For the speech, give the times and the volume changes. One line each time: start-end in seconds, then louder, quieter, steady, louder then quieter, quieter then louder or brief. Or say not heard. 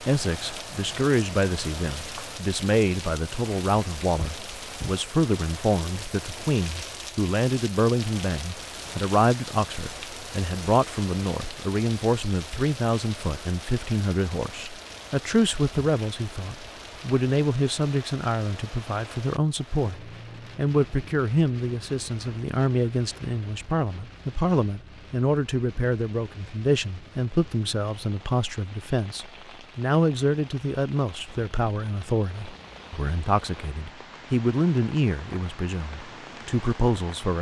0.0-37.3 steady.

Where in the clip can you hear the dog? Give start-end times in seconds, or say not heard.
not heard.